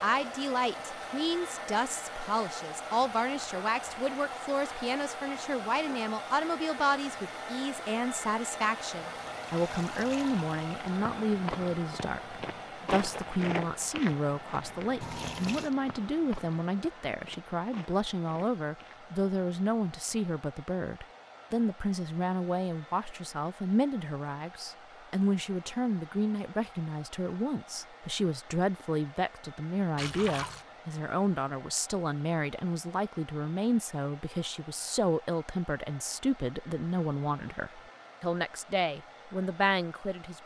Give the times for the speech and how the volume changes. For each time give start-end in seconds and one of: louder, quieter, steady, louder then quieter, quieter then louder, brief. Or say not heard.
0.0-40.4 steady.